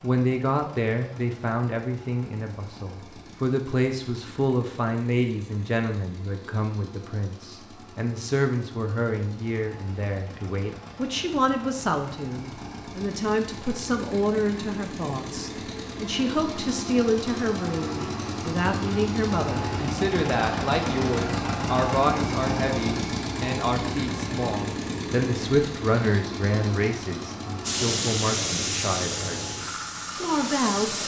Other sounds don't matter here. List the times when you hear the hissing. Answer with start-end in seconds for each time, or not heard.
27.6-31.0.